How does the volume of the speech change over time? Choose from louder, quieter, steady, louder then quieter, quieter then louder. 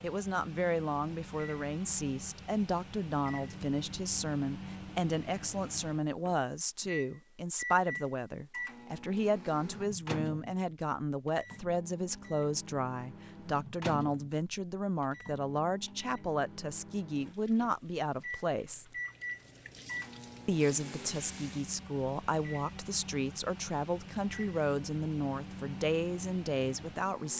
steady.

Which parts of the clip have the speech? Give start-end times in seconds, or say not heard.
0.0-18.9, 20.4-27.3.